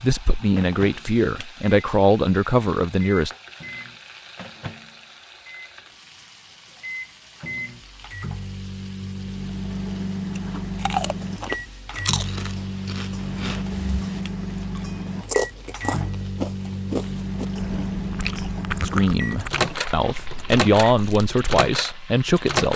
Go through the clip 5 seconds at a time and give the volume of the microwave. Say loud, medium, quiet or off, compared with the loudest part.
medium, medium, loud, loud, loud.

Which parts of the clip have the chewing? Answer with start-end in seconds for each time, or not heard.
10.3-21.4.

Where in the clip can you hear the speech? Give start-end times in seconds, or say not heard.
0.0-3.3, 18.9-22.7.